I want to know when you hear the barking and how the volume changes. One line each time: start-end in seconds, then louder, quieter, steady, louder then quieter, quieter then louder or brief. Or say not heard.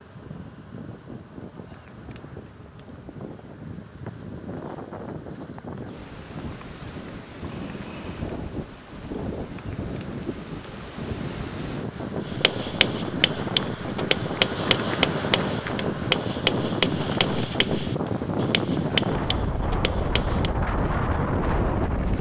not heard.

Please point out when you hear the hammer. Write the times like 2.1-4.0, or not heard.
12.2-20.5.